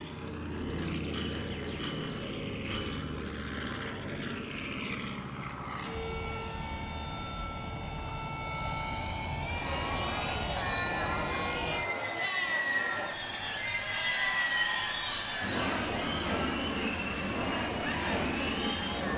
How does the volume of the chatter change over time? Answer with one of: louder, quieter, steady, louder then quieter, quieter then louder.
steady.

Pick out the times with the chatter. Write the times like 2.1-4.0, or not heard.
9.5-19.1.